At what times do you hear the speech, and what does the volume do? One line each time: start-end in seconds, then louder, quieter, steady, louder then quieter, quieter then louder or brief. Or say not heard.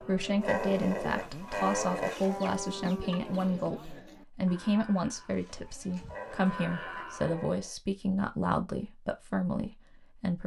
0.0-10.4 steady.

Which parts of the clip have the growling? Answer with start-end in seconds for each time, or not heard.
0.4-2.2, 6.1-7.8.